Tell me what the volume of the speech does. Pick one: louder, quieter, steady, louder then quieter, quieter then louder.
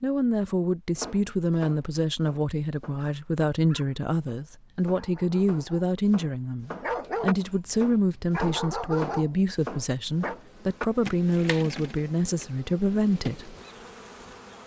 steady.